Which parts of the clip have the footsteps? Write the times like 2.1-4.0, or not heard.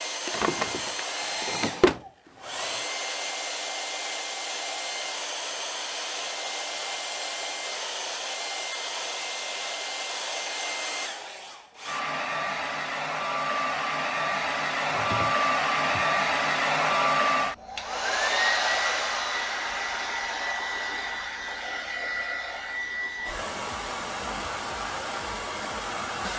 not heard.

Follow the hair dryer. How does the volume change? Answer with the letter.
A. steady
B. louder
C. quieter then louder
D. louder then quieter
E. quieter
D.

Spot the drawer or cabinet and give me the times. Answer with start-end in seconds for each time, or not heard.
0.2-2.0, 14.8-16.1.